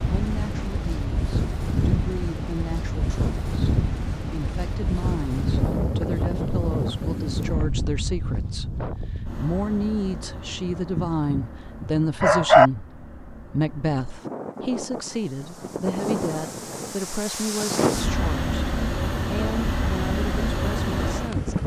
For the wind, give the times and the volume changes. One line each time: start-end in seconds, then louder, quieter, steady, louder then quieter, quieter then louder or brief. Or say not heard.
0.0-21.6 quieter then louder.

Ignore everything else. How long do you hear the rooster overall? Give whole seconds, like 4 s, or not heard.
2 s.